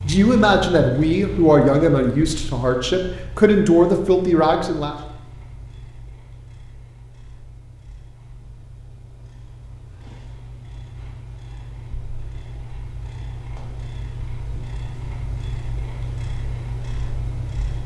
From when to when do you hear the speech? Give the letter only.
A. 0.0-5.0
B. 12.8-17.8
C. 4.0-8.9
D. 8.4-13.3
A.